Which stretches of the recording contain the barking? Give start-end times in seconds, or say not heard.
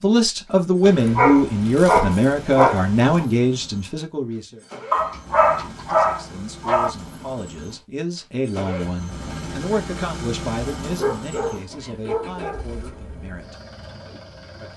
0.8-3.2, 4.9-6.9, 10.9-12.7.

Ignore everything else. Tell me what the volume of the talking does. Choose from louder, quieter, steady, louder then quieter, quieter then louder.
quieter.